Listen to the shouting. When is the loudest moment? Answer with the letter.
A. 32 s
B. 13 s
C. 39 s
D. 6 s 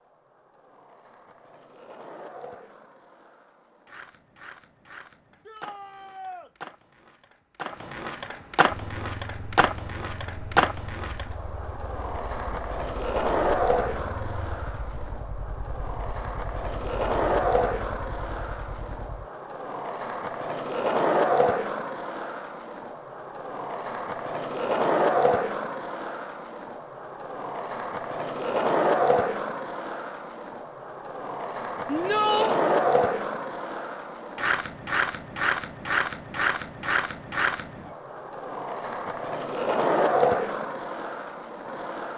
A.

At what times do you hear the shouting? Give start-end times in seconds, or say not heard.
5.5-6.5, 31.9-32.5.